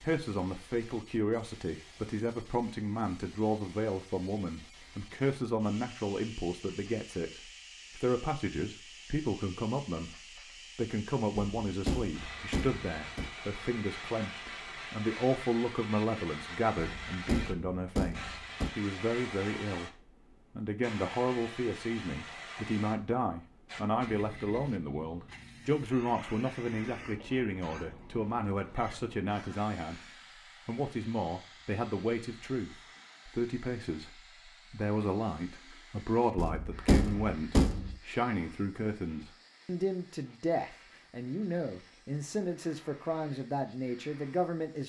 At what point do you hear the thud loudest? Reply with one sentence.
The volume of the thud peaks at 37 seconds.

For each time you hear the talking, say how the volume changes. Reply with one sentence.
The talking can be heard from 0.0 to 44.8 s, at a steady volume.